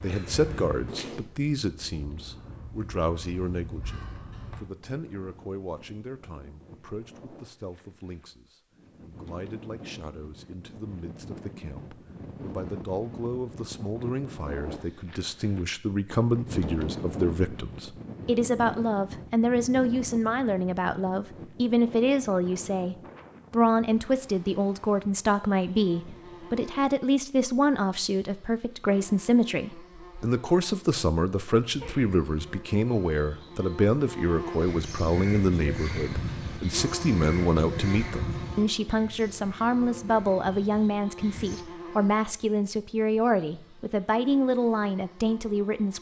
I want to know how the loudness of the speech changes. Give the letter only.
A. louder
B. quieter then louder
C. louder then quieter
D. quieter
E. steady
A.